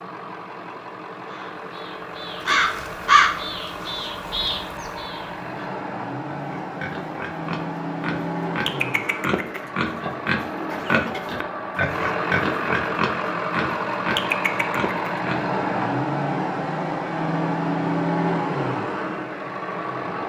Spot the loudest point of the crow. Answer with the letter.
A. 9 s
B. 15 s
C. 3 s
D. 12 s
C.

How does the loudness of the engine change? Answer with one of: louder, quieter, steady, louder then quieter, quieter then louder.
louder.